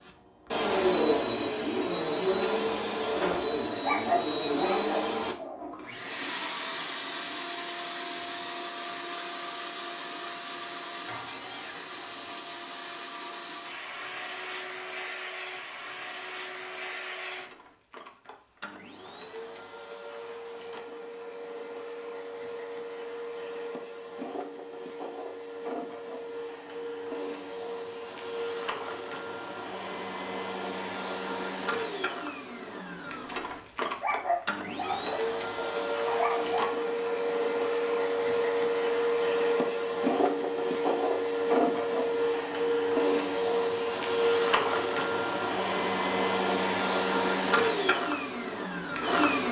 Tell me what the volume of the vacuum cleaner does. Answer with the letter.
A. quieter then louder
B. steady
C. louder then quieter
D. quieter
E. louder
A.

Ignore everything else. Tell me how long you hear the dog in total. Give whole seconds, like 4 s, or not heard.
5 s.